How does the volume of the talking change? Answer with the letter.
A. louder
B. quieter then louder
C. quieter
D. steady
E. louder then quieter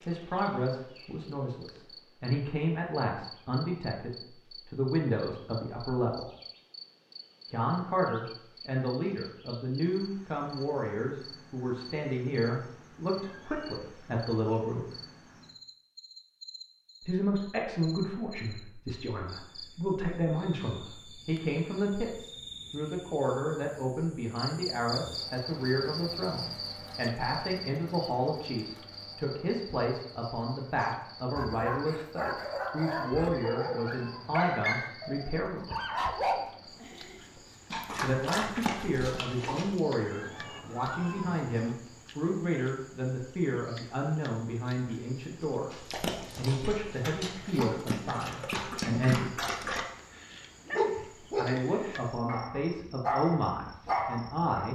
D.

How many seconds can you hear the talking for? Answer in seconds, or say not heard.
47 s.